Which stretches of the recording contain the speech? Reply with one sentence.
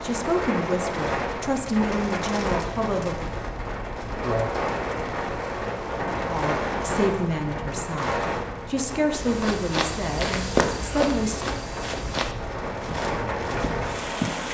You can hear the speech from 0.0 to 3.2 s and from 6.2 to 11.6 s.